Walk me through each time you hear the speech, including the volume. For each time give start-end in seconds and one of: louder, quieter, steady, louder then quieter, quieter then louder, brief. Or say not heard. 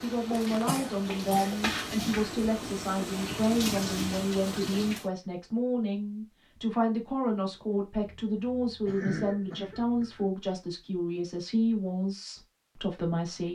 0.0-13.5 steady.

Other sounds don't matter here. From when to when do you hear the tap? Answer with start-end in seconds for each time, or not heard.
0.0-5.1.